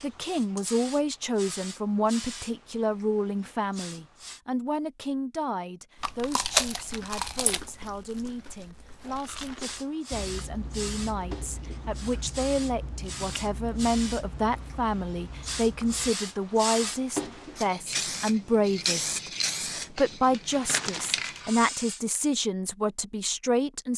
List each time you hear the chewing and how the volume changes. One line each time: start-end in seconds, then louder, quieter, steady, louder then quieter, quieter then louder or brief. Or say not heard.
6.0-16.1 quieter.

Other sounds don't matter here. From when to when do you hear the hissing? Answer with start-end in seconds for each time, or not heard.
0.0-4.4, 9.0-22.0.